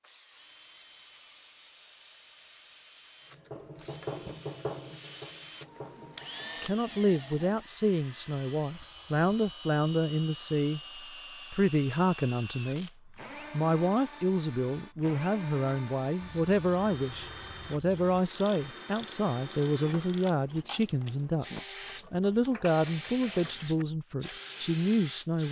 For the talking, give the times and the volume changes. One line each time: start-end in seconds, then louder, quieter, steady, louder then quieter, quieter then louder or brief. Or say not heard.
6.6-25.4 steady.